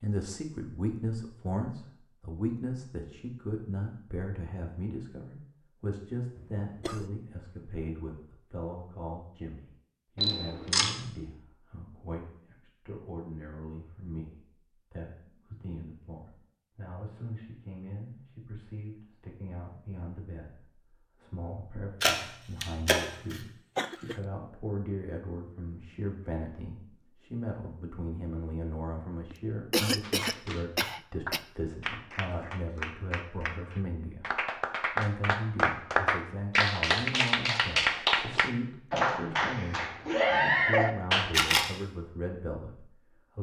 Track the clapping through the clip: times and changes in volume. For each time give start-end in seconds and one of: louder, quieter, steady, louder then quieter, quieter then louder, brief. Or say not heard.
30.0-41.4 louder.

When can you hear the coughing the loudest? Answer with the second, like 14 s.
30 s.